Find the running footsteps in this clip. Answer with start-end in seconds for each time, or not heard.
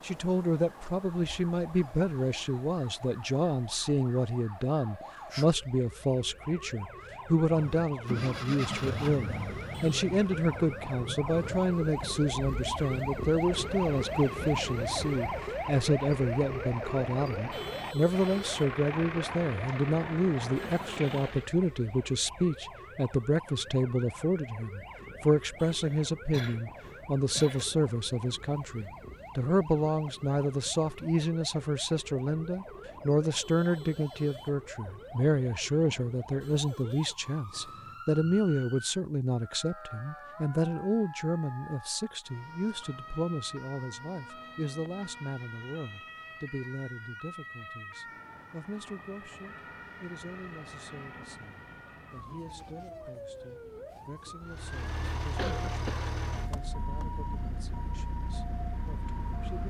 not heard.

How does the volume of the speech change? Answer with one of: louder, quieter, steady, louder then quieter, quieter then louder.
quieter.